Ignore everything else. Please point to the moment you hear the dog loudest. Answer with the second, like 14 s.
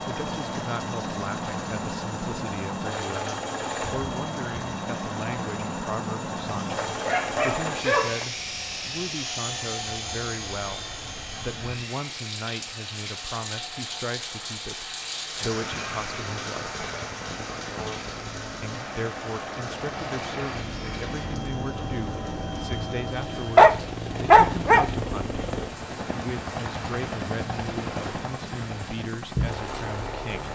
24 s.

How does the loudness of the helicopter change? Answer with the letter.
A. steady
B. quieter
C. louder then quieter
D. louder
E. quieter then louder
E.